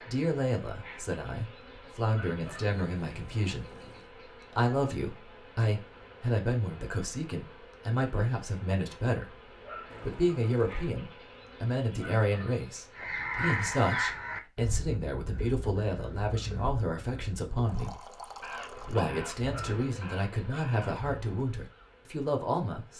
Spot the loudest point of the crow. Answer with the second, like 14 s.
14 s.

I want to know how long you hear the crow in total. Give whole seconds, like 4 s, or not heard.
9 s.